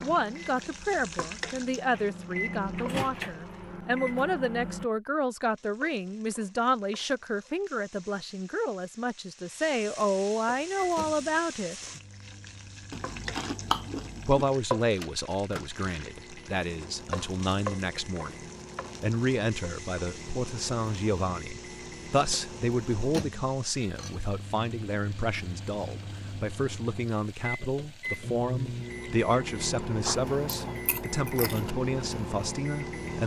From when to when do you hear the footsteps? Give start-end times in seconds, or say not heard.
not heard.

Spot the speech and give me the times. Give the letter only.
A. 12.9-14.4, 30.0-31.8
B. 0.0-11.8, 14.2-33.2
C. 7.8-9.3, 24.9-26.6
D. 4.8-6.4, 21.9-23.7
B.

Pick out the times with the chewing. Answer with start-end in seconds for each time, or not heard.
12.9-14.4, 30.0-31.8.